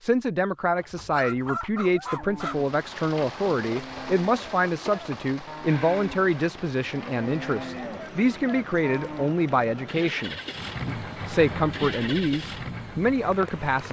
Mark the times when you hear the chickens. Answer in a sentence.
You can hear the chickens from 0.8 to 2.5 s.